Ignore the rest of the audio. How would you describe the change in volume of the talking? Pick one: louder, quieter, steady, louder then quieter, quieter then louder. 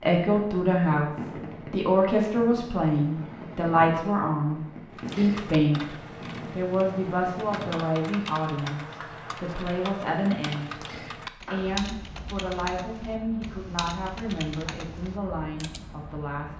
quieter.